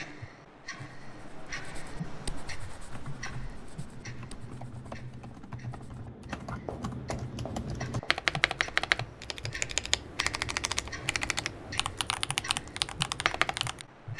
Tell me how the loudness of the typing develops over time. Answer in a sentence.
The volume of the typing goes up.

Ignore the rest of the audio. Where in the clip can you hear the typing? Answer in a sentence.
The typing can be heard from 2.9 to 13.8 s.